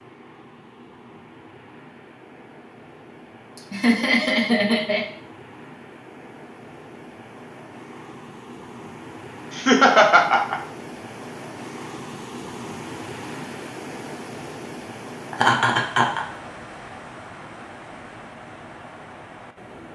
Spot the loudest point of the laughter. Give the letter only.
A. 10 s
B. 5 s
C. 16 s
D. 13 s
A.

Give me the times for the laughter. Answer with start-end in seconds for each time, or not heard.
3.5-5.0, 9.5-10.6, 15.3-16.2.